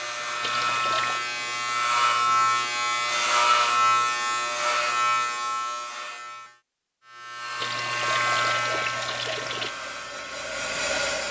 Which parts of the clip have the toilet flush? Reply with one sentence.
You can hear the toilet flush from 0.4 to 1.2 s and from 7.6 to 9.7 s.